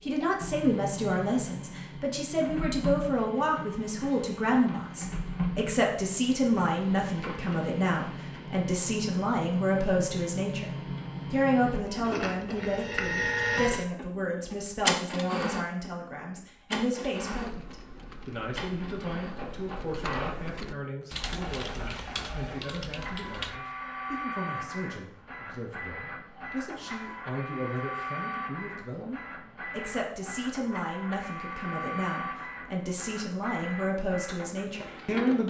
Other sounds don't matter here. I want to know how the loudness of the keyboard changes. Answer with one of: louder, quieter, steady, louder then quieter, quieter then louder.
louder.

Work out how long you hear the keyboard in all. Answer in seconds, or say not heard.
6 s.